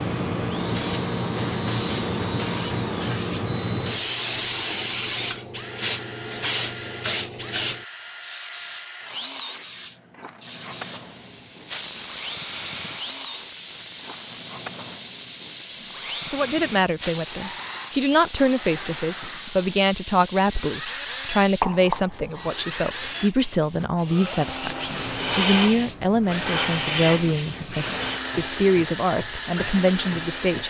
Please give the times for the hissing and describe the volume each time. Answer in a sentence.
You can hear the hissing from 0.0 to 30.6 s, at a steady volume.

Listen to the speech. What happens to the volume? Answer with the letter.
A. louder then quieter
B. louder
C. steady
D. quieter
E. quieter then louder
C.